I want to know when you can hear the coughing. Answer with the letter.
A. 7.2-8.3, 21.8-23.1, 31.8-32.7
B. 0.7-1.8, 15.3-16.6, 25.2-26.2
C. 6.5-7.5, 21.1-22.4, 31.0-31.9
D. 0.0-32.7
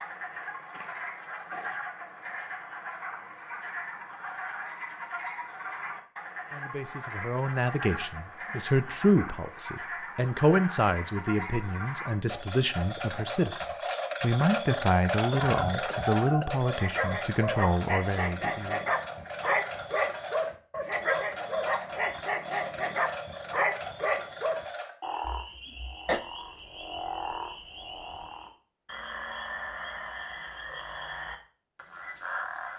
B.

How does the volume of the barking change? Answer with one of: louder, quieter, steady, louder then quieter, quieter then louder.
steady.